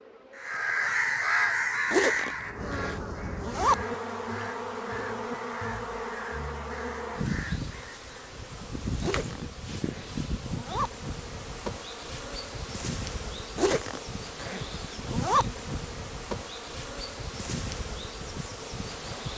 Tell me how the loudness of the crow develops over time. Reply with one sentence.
The volume of the crow goes down.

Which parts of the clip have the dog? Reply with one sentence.
The dog can't be heard in this clip.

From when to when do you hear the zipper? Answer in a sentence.
You can hear the zipper from 1.9 to 3.8 s, from 9.0 to 10.9 s and from 13.6 to 15.4 s.